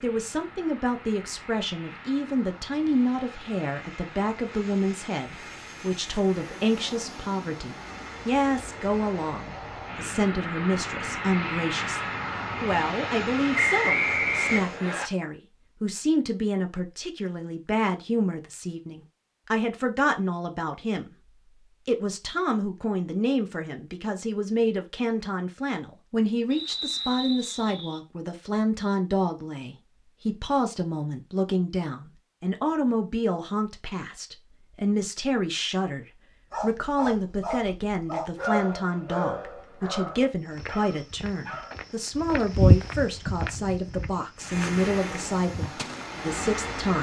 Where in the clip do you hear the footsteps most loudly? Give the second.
43 s.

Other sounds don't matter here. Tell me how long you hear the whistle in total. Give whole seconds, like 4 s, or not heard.
3 s.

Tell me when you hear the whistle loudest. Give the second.
14 s.